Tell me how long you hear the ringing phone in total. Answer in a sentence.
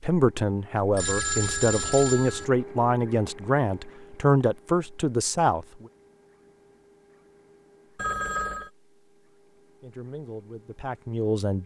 You can hear the ringing phone for 2 seconds altogether.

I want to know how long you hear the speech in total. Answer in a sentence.
You can hear the speech for 8 seconds altogether.